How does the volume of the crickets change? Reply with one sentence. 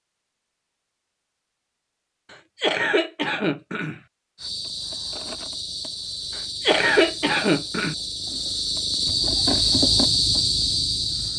The loudness of the crickets goes up.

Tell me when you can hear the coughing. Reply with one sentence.
The coughing can be heard from 2.3 to 4.0 s and from 6.3 to 8.0 s.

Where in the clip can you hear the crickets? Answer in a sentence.
The crickets can be heard from 4.3 to 11.3 s.